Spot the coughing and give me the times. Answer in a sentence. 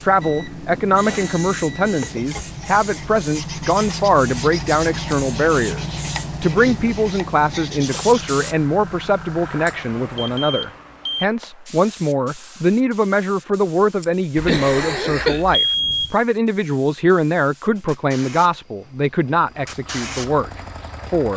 You can hear the coughing from 14.0 to 15.4 s.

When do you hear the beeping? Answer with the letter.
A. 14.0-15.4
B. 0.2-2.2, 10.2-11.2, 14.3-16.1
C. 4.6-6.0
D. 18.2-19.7
B.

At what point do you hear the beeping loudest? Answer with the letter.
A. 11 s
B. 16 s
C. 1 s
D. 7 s
B.